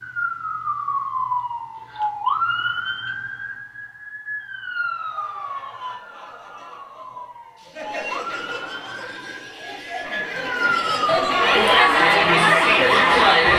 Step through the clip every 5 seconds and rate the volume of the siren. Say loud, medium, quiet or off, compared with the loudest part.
loud, medium, loud.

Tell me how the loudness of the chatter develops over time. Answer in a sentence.
The loudness of the chatter goes up.